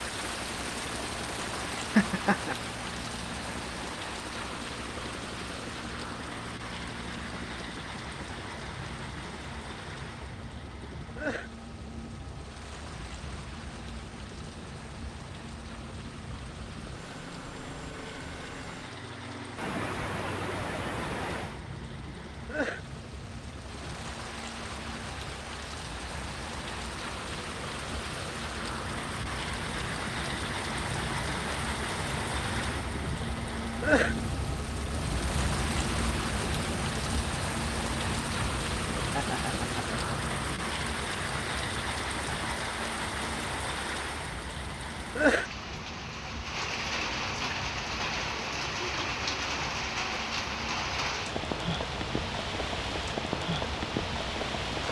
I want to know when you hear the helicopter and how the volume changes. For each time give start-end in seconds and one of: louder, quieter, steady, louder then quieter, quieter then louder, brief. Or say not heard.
0.0-54.8 louder then quieter.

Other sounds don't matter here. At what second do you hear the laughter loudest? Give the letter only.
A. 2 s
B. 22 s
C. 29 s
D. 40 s
A.